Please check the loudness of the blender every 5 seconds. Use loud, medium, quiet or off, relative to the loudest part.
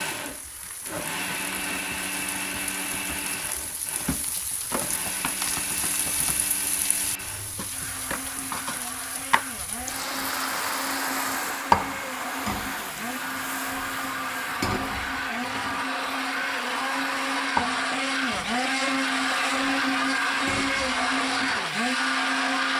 medium, quiet, medium, loud, loud.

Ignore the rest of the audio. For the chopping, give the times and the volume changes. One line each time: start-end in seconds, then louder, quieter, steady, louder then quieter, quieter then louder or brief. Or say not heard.
not heard.